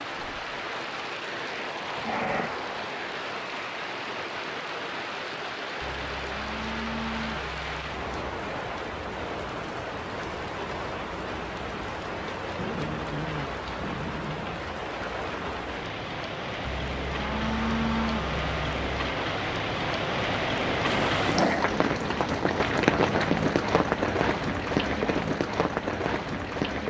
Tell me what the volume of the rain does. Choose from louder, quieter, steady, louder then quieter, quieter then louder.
louder.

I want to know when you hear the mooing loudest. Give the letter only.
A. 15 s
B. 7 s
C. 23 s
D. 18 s
D.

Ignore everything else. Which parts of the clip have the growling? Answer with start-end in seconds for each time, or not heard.
1.9-2.5, 12.6-14.6, 20.9-21.6.